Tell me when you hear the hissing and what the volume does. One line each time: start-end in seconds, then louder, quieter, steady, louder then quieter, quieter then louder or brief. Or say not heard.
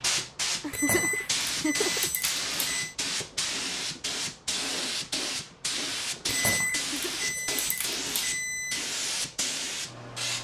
0.0-10.3 steady.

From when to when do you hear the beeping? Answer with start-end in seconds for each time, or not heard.
0.7-3.0, 6.2-8.8.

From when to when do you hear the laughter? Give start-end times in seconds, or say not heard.
0.6-2.1, 6.9-7.3.